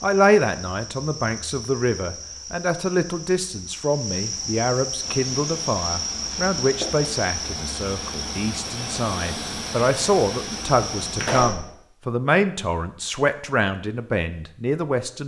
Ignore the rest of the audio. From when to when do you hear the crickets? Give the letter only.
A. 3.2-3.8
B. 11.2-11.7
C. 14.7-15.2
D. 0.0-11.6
D.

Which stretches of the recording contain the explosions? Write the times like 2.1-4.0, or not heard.
11.2-11.7.